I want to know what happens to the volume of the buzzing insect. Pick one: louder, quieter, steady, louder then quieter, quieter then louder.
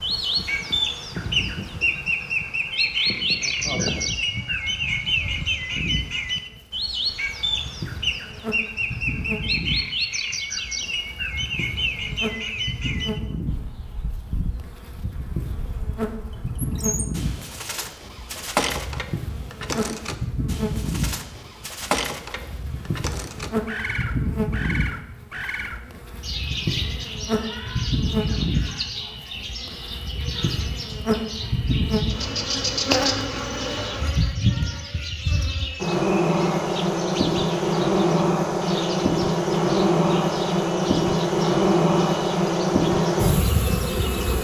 louder.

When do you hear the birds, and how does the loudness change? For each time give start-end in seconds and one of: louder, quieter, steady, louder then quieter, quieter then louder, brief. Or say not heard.
0.0-44.3 quieter.